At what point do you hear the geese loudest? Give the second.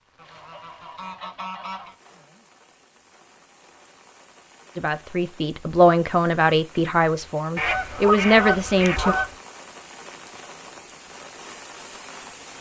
8 s.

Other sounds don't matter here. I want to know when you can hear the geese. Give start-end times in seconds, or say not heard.
0.1-1.9, 7.5-9.3.